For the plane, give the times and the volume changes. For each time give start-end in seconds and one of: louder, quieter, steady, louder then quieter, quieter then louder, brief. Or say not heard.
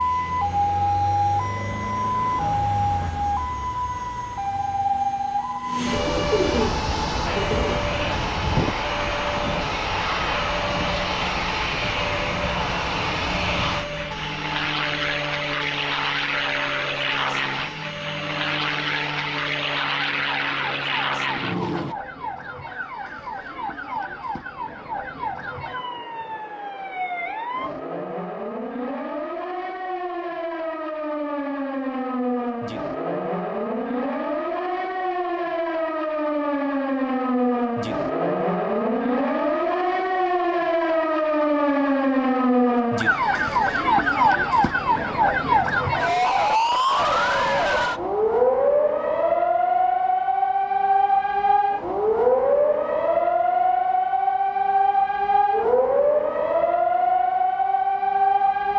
0.0-21.9 louder.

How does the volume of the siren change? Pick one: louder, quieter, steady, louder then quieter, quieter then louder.
quieter then louder.